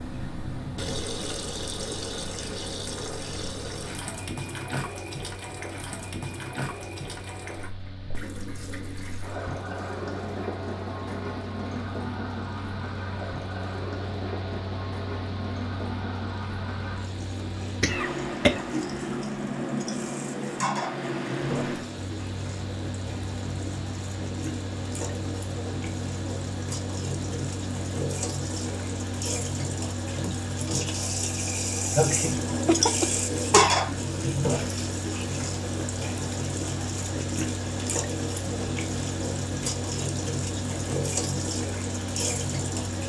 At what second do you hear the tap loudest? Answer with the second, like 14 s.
33 s.